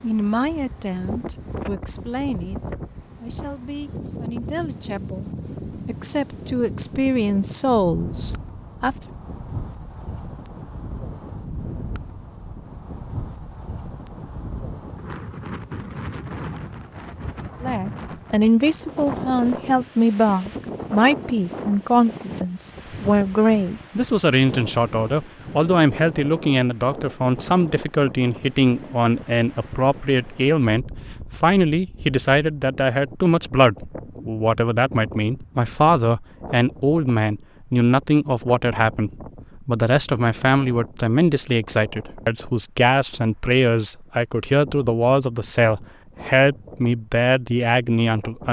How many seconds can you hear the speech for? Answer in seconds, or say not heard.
40 s.